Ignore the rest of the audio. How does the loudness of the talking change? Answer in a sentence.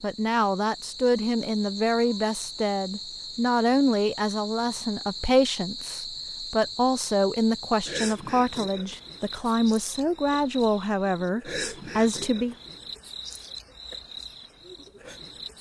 The volume of the talking stays about the same.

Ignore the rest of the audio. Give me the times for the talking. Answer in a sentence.
You can hear the talking from 0.0 to 12.6 s.